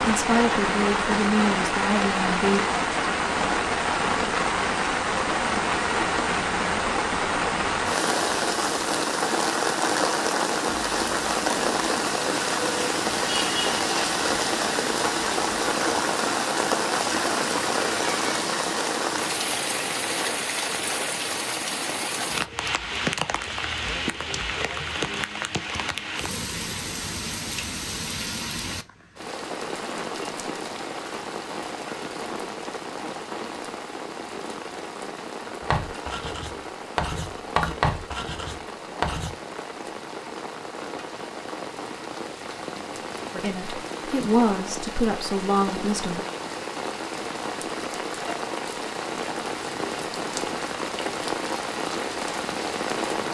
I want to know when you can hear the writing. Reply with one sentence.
The writing can be heard from 35.6 to 39.4 s.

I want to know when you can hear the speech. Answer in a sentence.
The speech can be heard from 0.1 to 2.6 s and from 43.3 to 46.2 s.